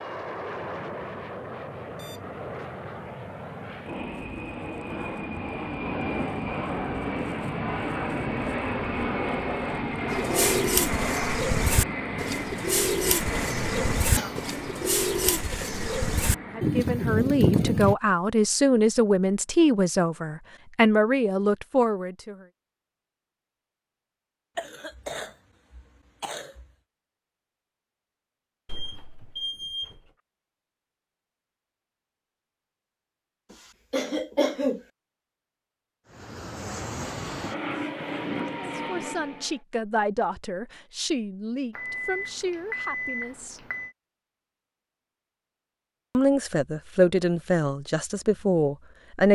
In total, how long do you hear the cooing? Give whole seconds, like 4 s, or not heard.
8 s.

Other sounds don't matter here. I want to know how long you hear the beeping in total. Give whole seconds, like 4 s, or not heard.
4 s.